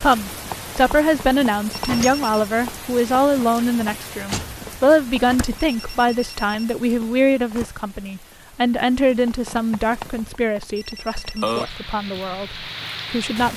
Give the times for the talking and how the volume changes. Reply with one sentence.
The talking can be heard from 0.0 to 13.5 s, getting quieter.